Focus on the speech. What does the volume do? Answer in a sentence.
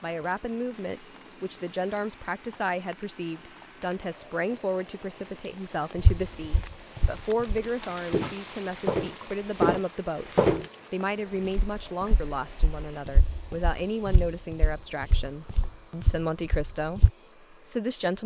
The volume of the speech stays about the same.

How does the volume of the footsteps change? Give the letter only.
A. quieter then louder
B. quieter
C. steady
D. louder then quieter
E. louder
D.